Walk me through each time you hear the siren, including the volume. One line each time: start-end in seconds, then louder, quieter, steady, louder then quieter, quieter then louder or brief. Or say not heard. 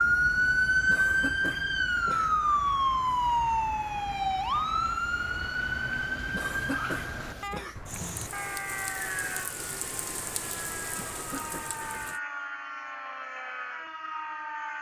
0.0-14.7 quieter.